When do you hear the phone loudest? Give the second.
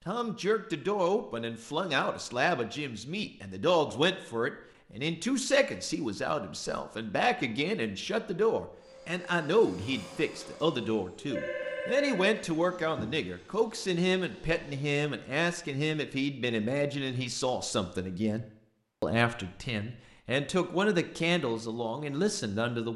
12 s.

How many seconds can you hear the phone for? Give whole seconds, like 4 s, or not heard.
2 s.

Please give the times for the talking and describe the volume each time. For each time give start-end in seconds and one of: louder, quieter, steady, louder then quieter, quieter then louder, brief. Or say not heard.
0.1-22.9 steady.